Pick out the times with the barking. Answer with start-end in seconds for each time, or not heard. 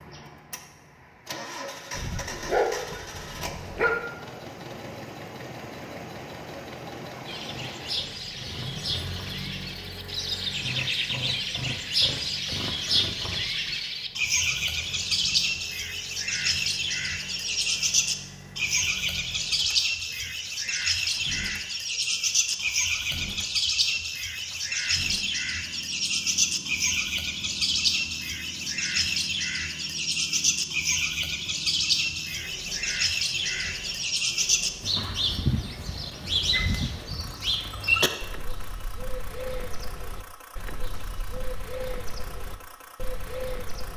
1.9-4.0.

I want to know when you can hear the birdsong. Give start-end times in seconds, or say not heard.
7.2-43.9.